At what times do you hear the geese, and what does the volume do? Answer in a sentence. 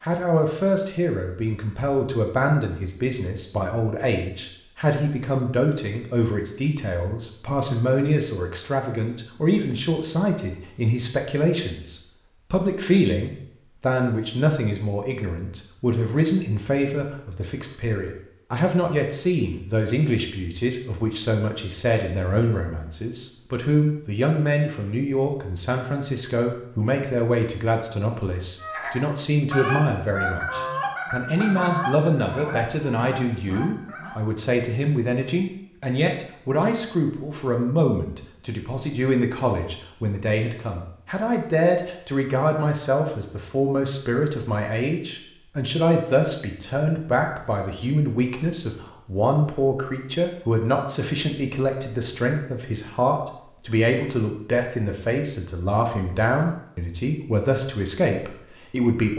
The geese can be heard from 28.6 to 34.1 s, getting quieter.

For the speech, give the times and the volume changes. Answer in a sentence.
You can hear the speech from 0.0 to 59.1 s, at a steady volume.